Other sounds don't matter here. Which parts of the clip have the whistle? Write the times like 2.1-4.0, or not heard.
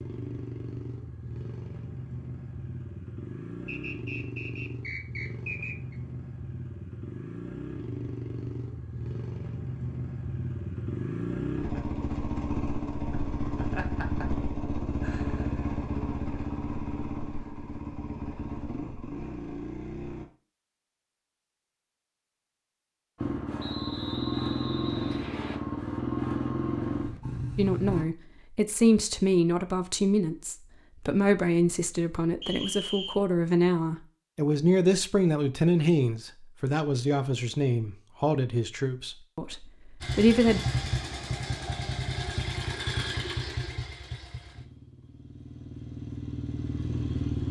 3.6-6.0, 23.6-25.6, 32.4-33.2.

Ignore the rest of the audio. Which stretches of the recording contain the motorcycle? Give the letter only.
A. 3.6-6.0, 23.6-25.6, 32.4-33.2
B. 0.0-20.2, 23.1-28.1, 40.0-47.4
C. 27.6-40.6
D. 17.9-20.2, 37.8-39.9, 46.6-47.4
B.